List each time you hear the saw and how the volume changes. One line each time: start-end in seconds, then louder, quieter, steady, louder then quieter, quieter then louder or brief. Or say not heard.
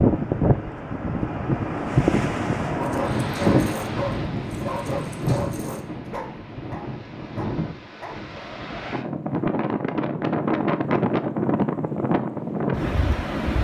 not heard.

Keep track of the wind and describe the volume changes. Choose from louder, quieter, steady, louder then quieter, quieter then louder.
quieter then louder.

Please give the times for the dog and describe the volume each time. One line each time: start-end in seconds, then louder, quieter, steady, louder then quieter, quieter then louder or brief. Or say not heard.
2.8-8.2 quieter.